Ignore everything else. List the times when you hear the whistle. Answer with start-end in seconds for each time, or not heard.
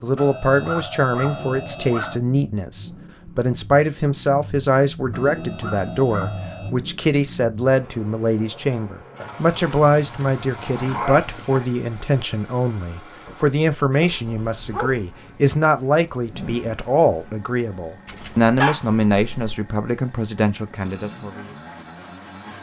not heard.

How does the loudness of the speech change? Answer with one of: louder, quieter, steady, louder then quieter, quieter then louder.
steady.